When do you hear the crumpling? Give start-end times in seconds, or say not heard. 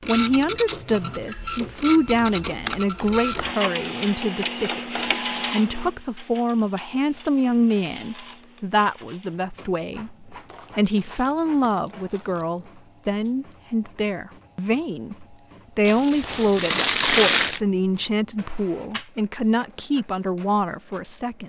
2.3-4.0, 10.5-12.4, 15.8-17.6.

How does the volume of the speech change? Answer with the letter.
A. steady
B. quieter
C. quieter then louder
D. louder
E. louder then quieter
A.